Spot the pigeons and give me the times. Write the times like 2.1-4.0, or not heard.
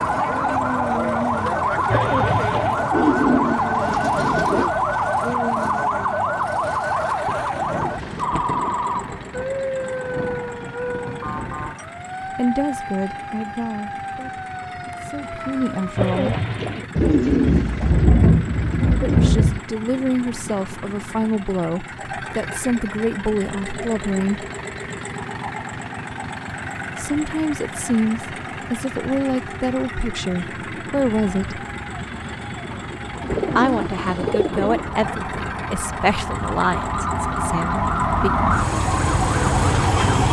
1.9-4.8, 15.9-17.9, 33.2-34.9.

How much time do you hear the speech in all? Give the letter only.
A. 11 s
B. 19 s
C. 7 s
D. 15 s
B.